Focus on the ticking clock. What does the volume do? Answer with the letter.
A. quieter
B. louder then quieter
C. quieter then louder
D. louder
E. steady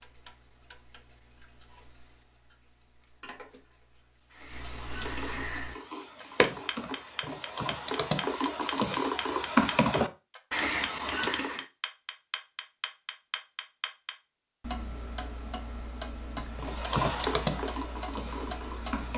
D.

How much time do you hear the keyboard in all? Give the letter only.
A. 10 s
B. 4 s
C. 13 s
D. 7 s
A.